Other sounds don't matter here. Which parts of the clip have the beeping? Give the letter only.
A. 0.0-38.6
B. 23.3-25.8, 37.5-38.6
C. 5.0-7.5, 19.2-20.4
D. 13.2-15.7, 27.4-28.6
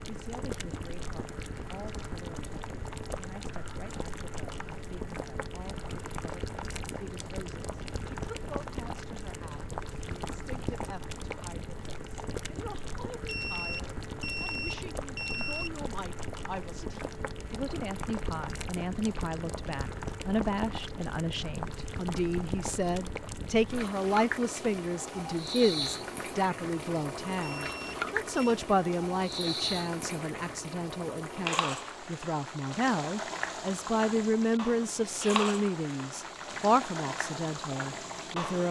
D.